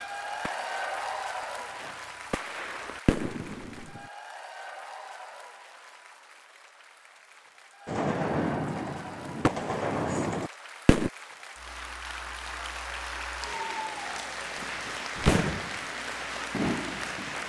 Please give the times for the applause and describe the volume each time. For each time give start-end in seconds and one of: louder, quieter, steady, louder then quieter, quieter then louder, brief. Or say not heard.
0.0-17.4 quieter then louder.